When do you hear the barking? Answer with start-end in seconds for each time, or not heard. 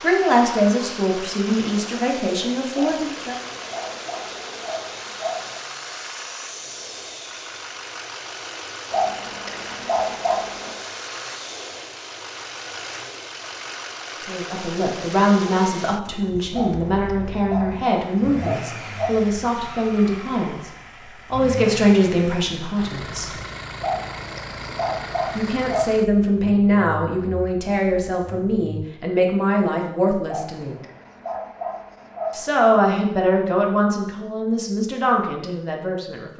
2.8-5.6, 8.9-10.8, 16.5-19.1, 23.8-25.9, 30.2-32.7.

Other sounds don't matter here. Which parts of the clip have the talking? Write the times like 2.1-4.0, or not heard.
0.0-3.4, 14.2-20.7, 21.3-23.3, 25.4-30.8, 32.3-36.3.